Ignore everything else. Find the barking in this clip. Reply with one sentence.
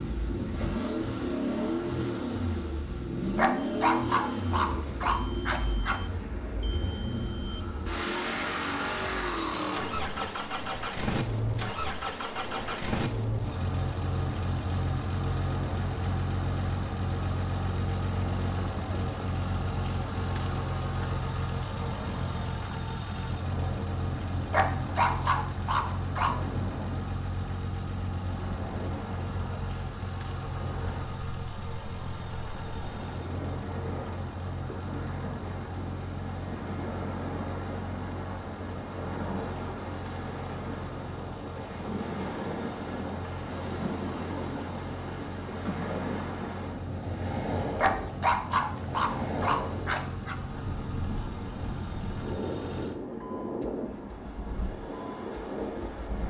The barking can be heard from 3.4 to 6.0 s, from 24.5 to 26.4 s and from 47.8 to 50.4 s.